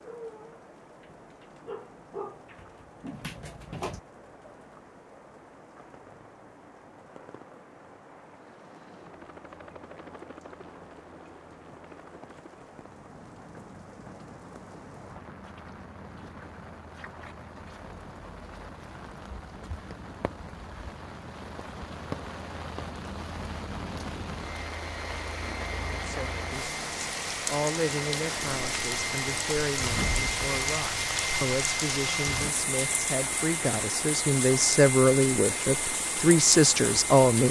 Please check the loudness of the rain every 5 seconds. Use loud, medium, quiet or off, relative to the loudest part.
quiet, quiet, quiet, quiet, medium, loud, loud, loud.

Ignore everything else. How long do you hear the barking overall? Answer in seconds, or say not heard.
4 s.